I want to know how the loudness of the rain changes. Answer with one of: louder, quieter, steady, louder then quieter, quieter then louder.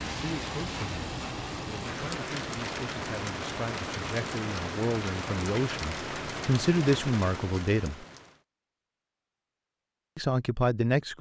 steady.